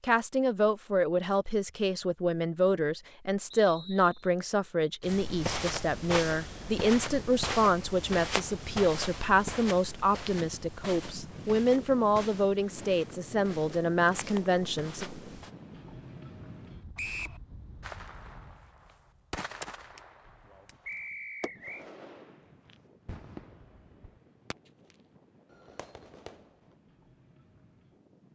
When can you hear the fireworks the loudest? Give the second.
19 s.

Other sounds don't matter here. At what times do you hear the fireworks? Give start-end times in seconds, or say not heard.
17.8-26.8.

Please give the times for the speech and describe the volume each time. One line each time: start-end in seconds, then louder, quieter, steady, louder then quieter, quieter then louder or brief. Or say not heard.
0.0-15.1 steady.